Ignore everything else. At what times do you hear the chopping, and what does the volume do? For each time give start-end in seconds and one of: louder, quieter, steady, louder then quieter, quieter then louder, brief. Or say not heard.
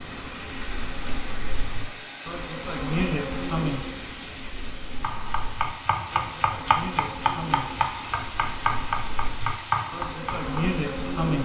5.0-10.7 steady.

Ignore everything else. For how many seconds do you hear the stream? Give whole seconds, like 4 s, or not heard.
11 s.